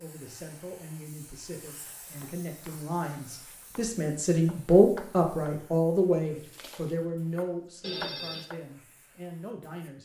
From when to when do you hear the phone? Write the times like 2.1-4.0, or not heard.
7.8-8.5.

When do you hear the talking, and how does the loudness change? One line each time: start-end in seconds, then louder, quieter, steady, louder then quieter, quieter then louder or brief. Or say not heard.
0.0-10.0 louder then quieter.